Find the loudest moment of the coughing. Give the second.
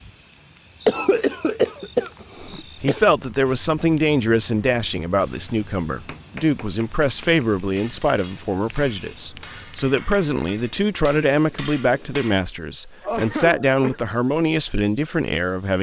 1 s.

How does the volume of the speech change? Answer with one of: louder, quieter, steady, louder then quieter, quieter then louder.
steady.